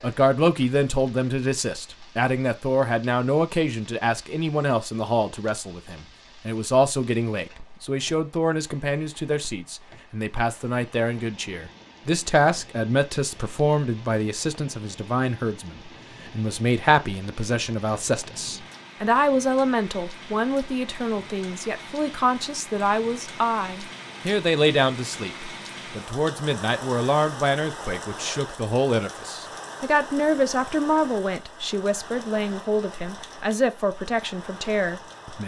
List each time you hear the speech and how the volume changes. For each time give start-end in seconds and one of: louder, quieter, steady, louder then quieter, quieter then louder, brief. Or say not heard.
0.0-35.4 steady.